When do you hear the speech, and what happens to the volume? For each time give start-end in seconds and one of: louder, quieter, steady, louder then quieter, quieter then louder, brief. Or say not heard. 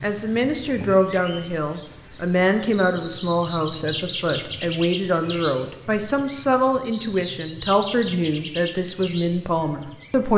0.0-10.3 steady.